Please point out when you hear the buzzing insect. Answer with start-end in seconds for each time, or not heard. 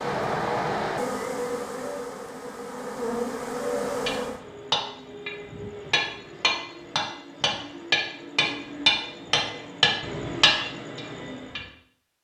0.0-4.4.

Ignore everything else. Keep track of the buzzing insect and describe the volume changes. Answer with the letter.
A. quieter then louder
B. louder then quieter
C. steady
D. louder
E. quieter
A.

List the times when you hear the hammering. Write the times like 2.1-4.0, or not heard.
4.0-11.6.